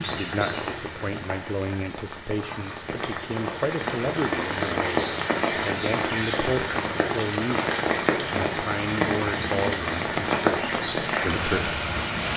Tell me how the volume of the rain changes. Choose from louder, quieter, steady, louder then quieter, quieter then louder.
louder.